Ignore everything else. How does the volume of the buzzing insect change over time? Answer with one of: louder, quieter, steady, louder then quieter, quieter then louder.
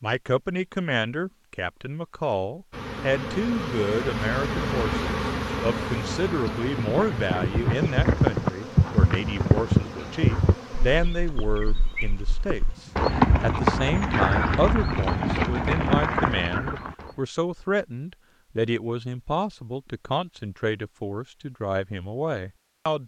quieter.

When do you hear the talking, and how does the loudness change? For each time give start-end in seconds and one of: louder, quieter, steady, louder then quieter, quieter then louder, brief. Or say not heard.
0.0-23.0 steady.